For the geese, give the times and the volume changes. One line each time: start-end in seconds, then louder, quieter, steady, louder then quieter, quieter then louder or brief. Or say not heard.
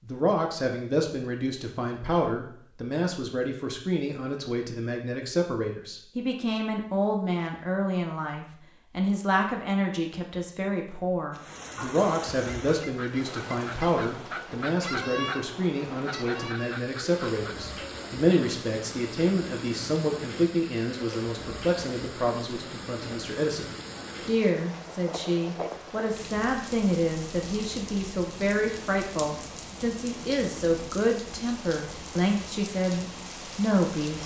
12.6-17.6 louder then quieter.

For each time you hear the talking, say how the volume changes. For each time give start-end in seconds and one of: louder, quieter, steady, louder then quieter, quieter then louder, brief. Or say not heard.
0.0-34.2 steady.